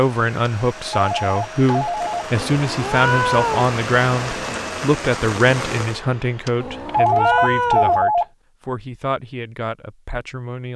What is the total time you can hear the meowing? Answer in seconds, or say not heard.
3 s.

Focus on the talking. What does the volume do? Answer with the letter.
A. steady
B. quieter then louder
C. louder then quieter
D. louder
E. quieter
E.